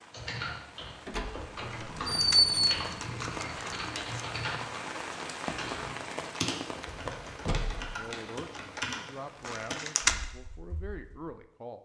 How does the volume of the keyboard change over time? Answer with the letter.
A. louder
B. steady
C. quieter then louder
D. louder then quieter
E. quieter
B.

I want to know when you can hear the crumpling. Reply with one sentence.
You can hear the crumpling from 1.7 to 4.2 s and from 9.4 to 10.2 s.